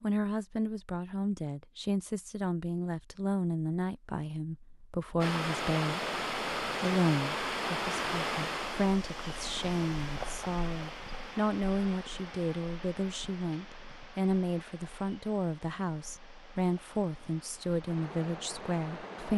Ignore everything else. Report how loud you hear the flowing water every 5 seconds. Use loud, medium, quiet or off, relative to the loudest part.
off, loud, medium, quiet.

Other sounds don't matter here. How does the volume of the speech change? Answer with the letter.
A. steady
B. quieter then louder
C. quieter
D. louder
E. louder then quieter
A.